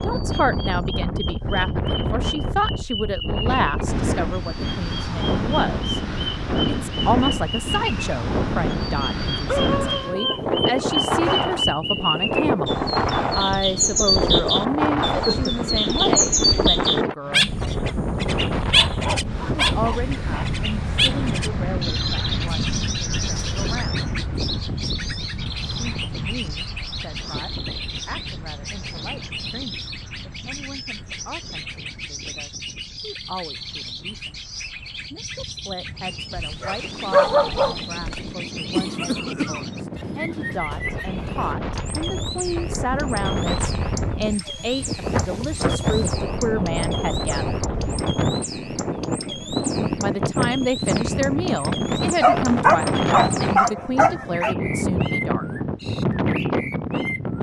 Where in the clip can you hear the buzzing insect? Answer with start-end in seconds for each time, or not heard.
not heard.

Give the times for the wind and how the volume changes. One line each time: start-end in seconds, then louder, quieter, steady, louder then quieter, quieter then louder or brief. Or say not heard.
0.0-57.3 quieter then louder.